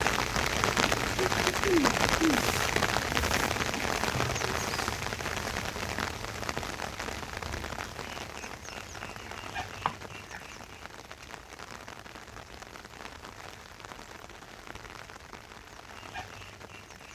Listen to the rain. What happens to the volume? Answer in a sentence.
The loudness of the rain goes down.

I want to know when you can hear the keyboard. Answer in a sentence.
The keyboard can't be heard in this clip.